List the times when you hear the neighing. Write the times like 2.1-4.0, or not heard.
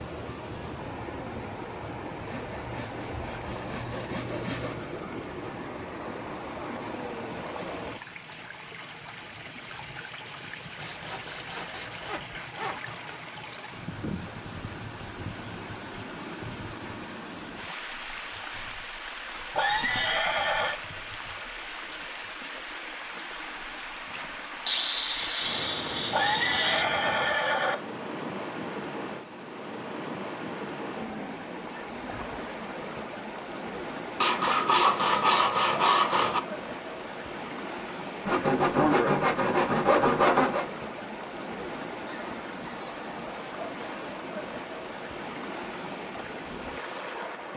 19.5-20.8, 26.1-27.8.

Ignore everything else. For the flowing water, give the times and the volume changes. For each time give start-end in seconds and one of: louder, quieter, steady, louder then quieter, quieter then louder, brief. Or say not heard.
0.0-47.5 steady.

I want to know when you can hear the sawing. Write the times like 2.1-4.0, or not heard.
2.2-4.8, 10.8-13.2, 24.6-26.9, 34.2-36.4, 38.2-40.6.